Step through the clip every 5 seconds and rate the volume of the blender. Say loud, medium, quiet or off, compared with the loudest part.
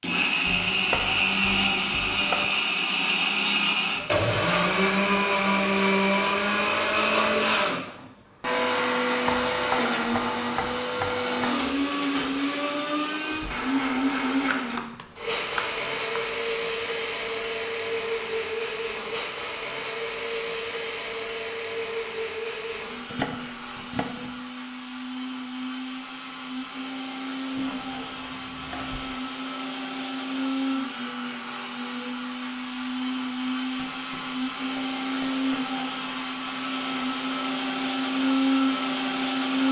loud, loud, loud, medium, medium, medium, medium, loud.